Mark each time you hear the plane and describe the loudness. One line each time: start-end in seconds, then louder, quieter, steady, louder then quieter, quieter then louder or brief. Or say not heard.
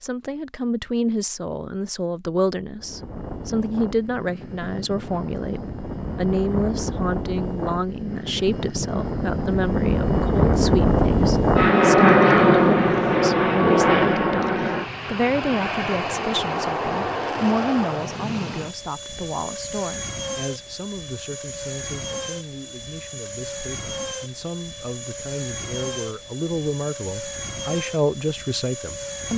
2.8-29.3 louder then quieter.